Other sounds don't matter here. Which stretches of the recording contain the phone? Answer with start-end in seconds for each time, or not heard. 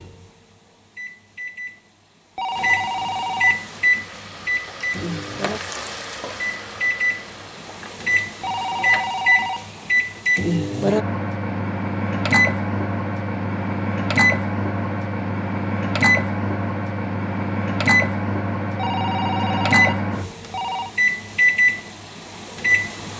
2.4-3.6, 8.4-9.7, 18.8-20.9.